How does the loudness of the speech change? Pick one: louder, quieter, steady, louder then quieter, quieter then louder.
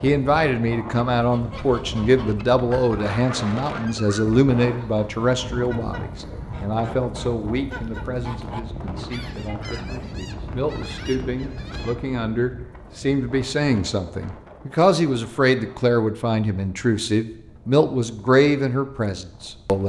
quieter then louder.